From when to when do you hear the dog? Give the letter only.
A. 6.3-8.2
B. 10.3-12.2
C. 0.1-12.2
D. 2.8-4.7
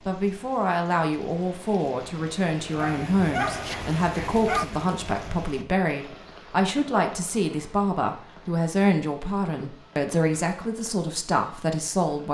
D.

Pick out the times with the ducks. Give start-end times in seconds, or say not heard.
not heard.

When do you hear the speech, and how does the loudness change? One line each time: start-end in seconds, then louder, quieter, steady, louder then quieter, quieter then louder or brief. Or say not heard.
0.1-12.2 steady.